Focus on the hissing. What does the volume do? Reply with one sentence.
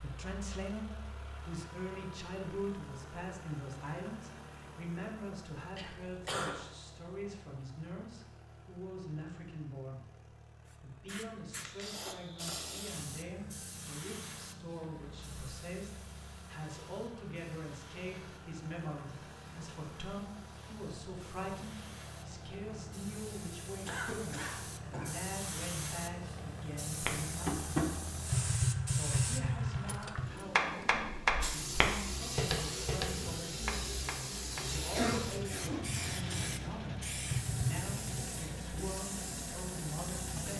The loudness of the hissing goes down, then up.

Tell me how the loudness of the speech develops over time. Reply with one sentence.
The loudness of the speech stays about the same.